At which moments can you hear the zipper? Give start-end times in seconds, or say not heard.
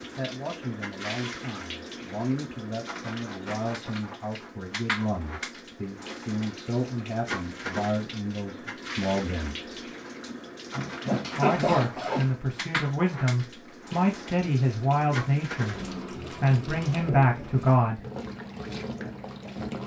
10.3-12.3.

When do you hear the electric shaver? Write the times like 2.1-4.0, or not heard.
not heard.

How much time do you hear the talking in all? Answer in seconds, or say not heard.
16 s.